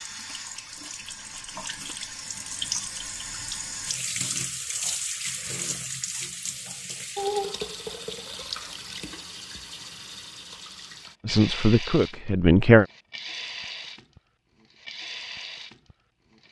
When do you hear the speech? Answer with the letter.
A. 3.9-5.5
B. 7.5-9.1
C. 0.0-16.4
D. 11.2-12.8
D.